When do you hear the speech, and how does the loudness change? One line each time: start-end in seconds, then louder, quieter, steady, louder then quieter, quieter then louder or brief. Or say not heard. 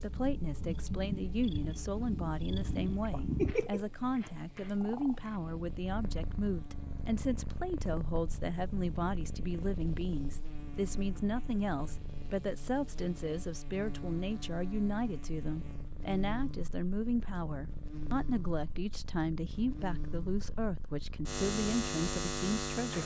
0.0-23.0 steady.